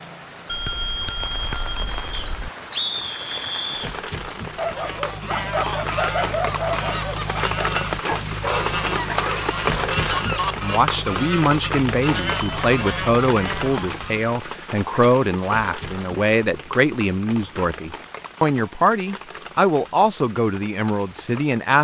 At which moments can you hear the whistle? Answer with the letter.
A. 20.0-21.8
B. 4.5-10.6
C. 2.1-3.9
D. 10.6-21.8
C.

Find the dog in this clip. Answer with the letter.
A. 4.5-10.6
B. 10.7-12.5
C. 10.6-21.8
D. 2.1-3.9
A.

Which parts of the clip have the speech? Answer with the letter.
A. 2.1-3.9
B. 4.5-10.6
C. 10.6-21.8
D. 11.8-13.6
C.